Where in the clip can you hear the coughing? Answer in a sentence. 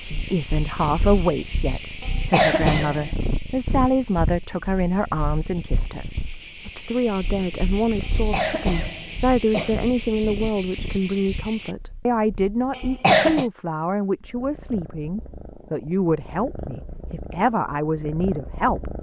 The coughing can be heard from 2.0 to 3.1 s, from 8.0 to 9.8 s and from 12.7 to 13.4 s.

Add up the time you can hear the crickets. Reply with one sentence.
You can hear the crickets for 12 seconds altogether.